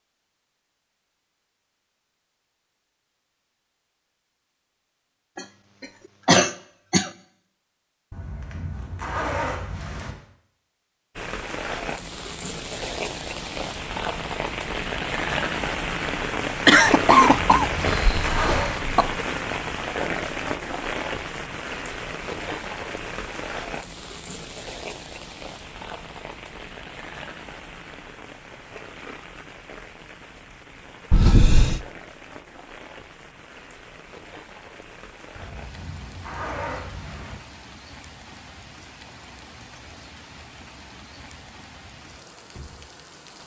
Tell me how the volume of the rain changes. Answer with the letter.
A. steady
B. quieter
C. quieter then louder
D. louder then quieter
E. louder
B.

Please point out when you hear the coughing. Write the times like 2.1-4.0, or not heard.
5.3-7.1, 16.6-19.1, 31.1-31.9.